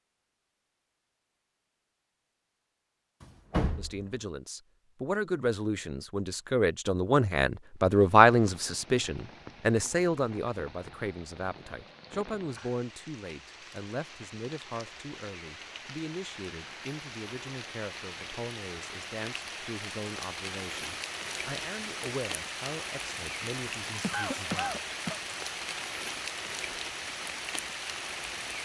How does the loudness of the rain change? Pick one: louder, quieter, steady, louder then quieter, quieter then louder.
louder.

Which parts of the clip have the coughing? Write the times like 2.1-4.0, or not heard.
24.0-25.2.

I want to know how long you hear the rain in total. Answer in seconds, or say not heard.
21 s.